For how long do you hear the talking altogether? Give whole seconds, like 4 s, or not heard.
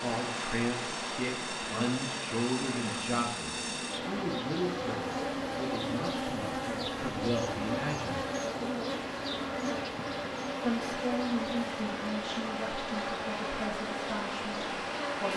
13 s.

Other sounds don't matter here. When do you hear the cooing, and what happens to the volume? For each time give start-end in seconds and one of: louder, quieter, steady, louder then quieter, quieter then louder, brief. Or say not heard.
not heard.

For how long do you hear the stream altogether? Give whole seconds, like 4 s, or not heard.
15 s.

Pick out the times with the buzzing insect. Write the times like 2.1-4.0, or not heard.
0.0-15.3.